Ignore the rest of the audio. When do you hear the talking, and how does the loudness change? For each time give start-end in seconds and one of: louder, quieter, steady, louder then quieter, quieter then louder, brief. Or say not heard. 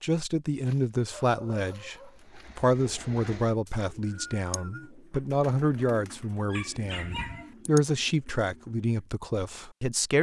0.0-10.1 steady.